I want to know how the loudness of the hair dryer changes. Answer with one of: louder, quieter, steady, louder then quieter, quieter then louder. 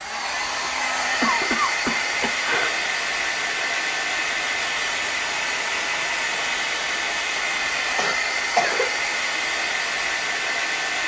steady.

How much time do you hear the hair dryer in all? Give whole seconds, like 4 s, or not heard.
11 s.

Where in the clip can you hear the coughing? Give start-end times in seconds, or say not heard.
1.2-2.8, 8.0-8.9.